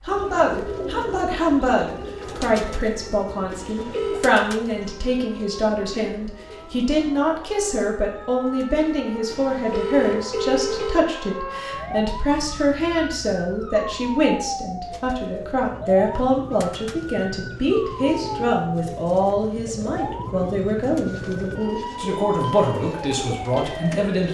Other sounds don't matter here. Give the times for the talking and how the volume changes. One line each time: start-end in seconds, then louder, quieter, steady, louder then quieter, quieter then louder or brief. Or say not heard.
0.0-24.2 steady.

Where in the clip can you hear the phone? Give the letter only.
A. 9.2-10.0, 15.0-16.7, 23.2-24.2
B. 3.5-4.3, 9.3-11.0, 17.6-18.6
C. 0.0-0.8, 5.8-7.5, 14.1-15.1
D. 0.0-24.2
B.